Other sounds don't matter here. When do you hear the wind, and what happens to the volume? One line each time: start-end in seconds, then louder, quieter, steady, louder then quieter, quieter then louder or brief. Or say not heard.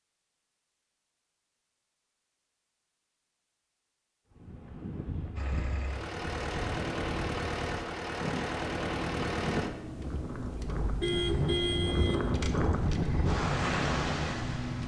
4.3-14.8 louder.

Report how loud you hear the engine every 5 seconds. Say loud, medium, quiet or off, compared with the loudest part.
off, loud, loud.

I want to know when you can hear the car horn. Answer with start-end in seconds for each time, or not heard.
11.0-12.3.